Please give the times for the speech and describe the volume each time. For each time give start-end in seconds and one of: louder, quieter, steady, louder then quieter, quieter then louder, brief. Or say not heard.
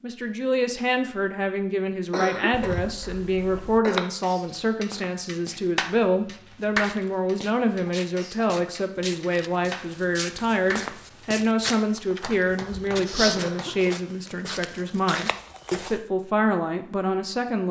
0.0-17.6 steady.